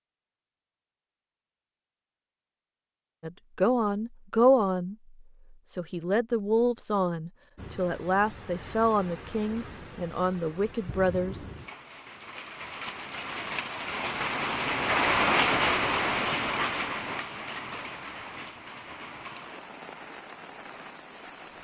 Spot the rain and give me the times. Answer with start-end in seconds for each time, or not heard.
7.5-21.5.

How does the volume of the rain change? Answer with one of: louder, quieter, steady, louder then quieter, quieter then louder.
louder then quieter.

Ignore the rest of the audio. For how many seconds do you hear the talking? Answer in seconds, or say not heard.
8 s.